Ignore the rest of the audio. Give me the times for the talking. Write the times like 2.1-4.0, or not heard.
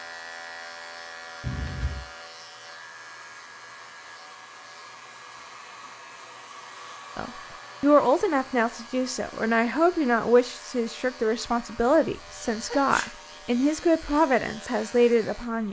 7.2-15.6.